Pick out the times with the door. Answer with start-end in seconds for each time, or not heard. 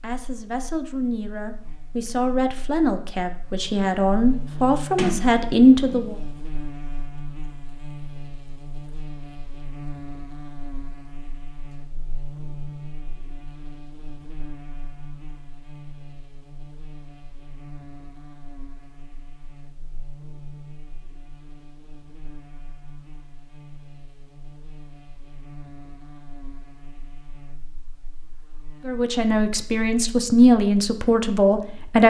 5.0-6.2.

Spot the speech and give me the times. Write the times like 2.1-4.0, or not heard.
0.0-6.2, 28.9-32.0.